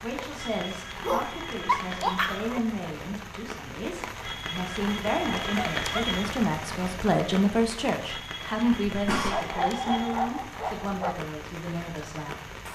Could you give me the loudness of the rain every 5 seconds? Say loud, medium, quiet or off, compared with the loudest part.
loud, loud, medium.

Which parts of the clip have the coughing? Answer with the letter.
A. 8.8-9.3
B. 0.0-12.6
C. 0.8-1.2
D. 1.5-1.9
A.